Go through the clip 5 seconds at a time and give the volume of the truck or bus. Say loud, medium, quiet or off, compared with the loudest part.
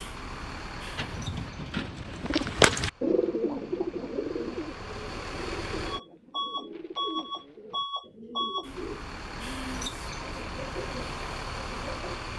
medium, loud, loud.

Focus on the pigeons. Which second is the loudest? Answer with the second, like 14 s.
3 s.